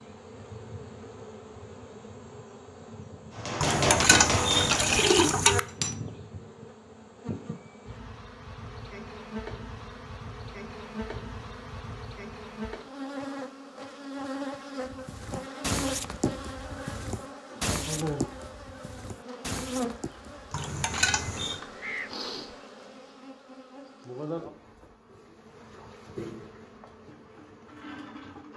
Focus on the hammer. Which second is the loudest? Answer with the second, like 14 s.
4 s.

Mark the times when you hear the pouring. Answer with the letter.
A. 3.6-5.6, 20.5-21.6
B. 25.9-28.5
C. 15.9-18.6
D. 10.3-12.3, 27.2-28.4
A.